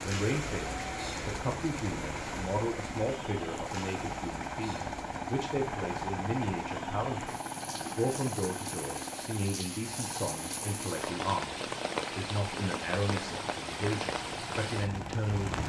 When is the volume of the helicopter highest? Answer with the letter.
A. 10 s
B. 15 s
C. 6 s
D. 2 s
C.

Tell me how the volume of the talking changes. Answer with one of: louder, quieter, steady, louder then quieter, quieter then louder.
steady.